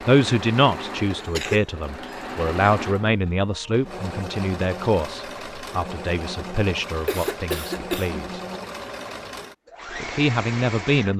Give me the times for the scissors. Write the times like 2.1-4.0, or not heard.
not heard.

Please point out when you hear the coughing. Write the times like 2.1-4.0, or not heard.
1.1-1.6, 7.0-8.2.